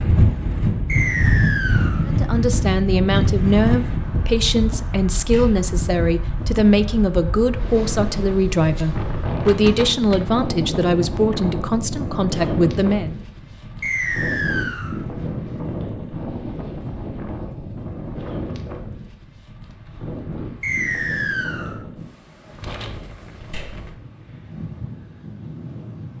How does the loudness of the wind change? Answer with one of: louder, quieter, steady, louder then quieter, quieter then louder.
quieter.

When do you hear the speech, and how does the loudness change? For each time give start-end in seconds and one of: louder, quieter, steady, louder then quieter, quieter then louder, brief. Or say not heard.
2.0-13.2 steady.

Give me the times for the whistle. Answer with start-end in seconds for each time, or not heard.
0.8-2.0, 13.8-14.9, 20.6-21.8.